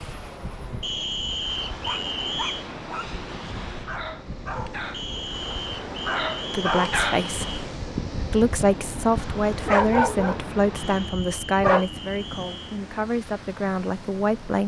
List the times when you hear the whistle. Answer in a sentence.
You can hear the whistle from 0.8 to 2.6 s, from 4.9 to 7.7 s and from 10.8 to 12.8 s.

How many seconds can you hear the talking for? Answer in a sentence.
The talking can be heard for 7 seconds in total.